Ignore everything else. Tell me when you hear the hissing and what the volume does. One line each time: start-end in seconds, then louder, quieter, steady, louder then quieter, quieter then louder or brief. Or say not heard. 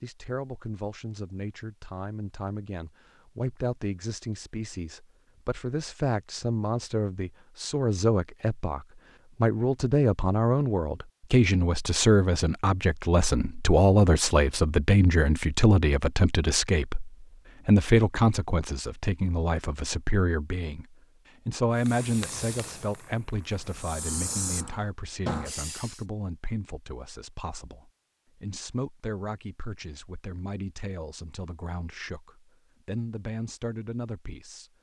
21.8-26.1 quieter then louder.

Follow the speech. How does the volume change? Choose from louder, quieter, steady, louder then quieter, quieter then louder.
louder then quieter.